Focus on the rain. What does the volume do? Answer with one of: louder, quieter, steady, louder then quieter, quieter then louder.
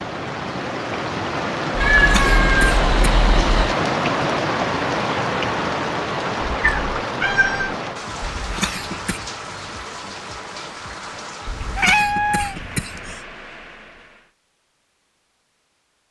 quieter.